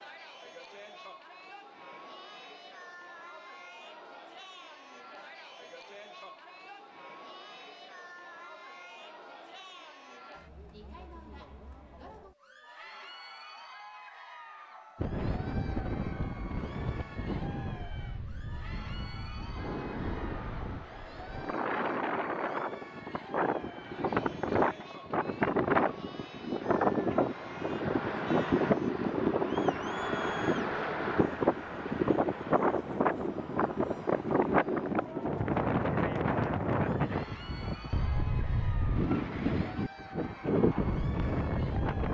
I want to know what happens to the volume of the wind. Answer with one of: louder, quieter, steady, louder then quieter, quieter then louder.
louder.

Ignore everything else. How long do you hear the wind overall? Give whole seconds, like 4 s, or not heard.
27 s.